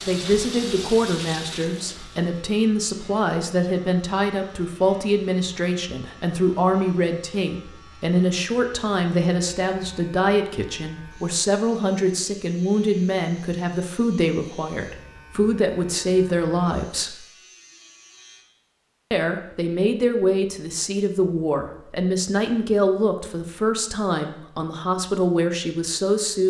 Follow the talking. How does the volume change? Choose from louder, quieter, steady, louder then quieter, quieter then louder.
steady.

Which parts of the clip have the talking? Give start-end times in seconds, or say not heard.
0.1-17.2, 19.1-26.4.